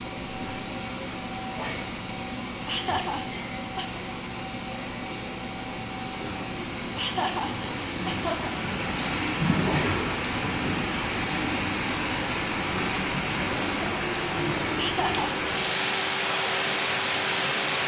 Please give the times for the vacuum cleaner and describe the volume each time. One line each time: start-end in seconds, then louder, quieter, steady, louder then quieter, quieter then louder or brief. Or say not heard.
0.0-17.8 steady.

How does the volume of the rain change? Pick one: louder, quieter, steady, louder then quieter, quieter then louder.
louder.